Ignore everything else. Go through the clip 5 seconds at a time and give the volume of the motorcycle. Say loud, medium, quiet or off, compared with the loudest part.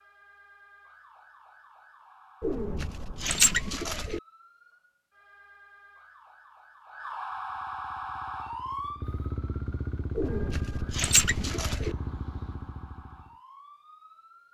off, loud, loud.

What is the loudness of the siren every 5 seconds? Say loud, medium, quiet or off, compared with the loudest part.
quiet, loud, quiet.